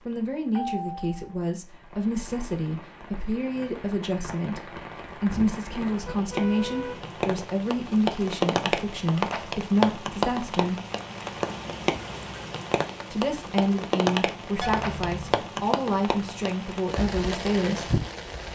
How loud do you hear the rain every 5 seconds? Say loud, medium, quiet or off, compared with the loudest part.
medium, loud, loud, loud.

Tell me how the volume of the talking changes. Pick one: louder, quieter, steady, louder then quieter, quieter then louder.
steady.